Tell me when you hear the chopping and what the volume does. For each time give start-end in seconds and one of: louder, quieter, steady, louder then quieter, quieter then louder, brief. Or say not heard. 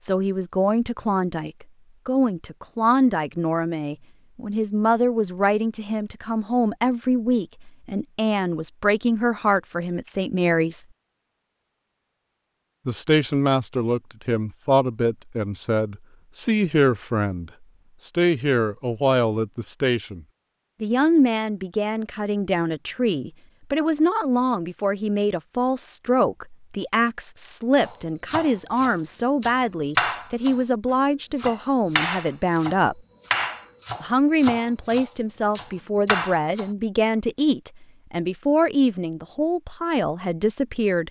27.8-30.6 brief
31.4-36.7 quieter then louder.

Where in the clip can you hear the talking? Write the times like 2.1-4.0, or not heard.
0.0-10.8, 12.8-33.0, 34.0-41.0.